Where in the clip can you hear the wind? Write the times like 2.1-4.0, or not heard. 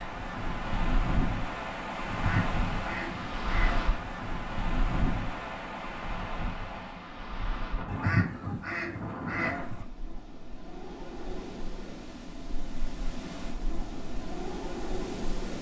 0.0-15.5.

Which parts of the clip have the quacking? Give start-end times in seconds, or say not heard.
2.0-3.9, 7.8-9.8.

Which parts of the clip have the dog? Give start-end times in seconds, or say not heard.
not heard.